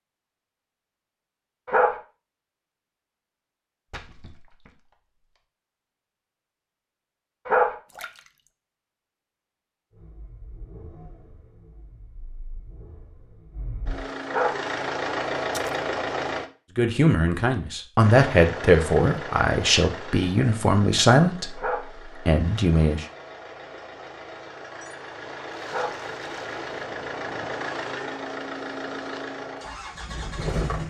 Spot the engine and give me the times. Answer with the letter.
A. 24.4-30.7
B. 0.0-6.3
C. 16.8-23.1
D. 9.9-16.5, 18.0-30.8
D.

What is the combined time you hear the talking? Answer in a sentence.
The talking can be heard for 6 seconds in total.